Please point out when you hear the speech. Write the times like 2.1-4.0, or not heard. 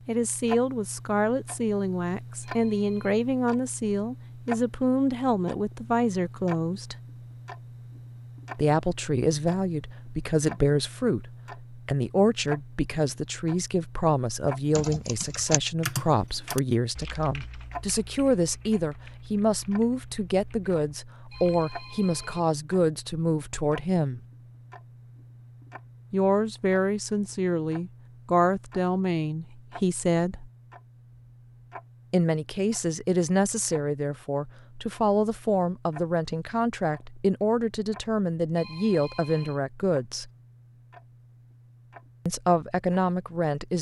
0.1-7.0, 8.6-24.2, 26.1-30.5, 32.1-40.3, 42.2-43.7.